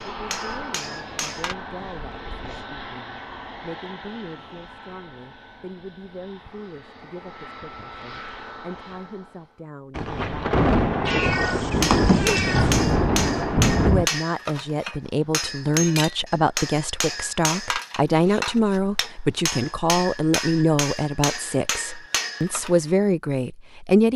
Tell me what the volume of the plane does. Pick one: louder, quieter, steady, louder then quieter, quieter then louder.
quieter then louder.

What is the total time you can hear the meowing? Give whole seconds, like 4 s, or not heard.
2 s.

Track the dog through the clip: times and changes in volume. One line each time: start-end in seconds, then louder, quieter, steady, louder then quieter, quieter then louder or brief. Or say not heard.
not heard.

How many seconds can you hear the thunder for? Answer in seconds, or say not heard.
4 s.